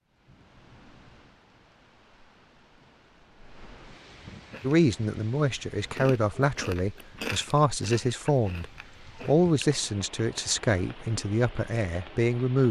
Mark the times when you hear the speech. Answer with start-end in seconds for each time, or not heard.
4.6-8.7, 9.2-12.6.